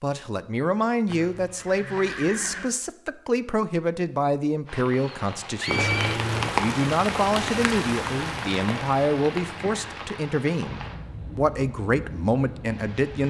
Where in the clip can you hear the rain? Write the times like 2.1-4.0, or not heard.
4.7-13.2.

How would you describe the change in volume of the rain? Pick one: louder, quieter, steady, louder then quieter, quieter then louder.
quieter.